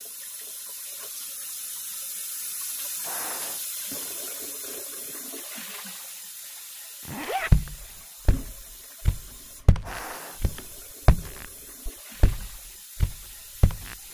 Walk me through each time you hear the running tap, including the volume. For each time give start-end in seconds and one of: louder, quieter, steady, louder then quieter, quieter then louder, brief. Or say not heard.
0.0-14.1 quieter.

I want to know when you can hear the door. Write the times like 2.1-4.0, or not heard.
not heard.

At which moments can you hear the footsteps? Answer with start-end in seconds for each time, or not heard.
7.5-13.9.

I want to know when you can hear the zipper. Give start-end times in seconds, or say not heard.
7.0-7.5.